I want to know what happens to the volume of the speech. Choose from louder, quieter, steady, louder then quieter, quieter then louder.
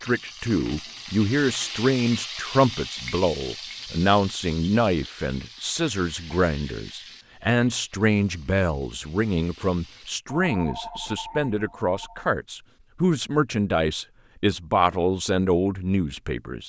steady.